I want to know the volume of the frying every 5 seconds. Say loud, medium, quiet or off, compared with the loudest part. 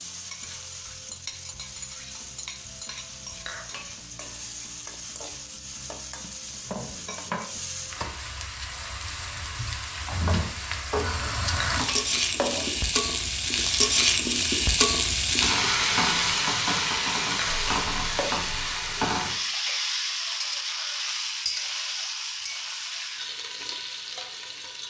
quiet, medium, loud, loud, medium.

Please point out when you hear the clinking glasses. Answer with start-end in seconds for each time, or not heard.
3.5-3.9, 11.6-12.7, 17.4-18.4.